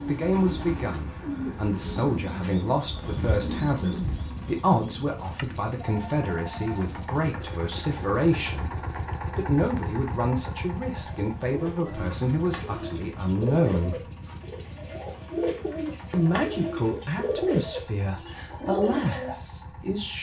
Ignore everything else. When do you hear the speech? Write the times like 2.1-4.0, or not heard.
0.1-14.1, 16.1-20.1.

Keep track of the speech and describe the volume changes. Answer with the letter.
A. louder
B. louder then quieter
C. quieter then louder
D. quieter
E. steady
E.